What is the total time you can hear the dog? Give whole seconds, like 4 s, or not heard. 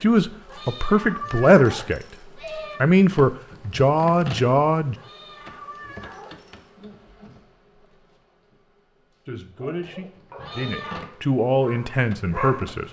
3 s.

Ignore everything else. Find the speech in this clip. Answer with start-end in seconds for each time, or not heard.
0.0-2.0, 2.8-5.0, 9.2-12.8.